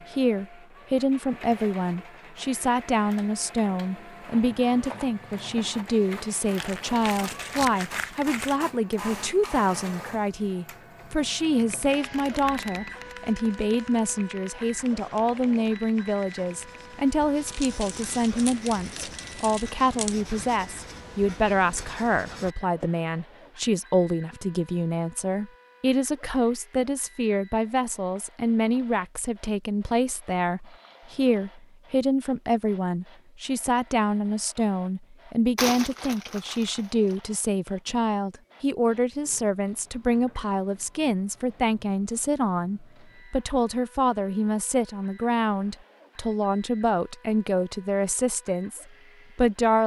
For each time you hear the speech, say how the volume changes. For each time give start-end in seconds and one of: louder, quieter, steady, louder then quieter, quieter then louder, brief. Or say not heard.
0.1-49.8 steady.